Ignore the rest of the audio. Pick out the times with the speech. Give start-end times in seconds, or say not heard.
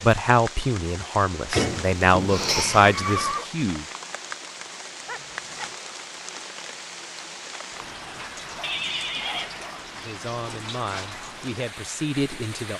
0.0-3.9, 9.9-12.7.